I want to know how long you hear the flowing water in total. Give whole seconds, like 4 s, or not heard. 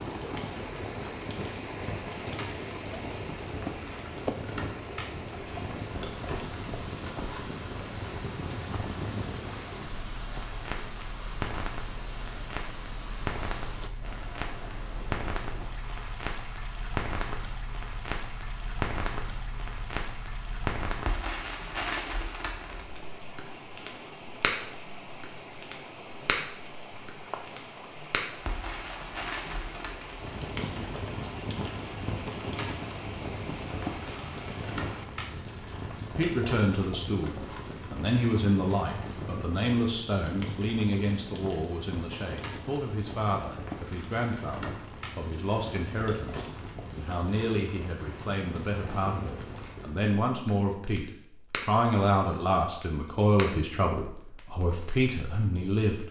35 s.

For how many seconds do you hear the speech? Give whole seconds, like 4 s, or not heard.
20 s.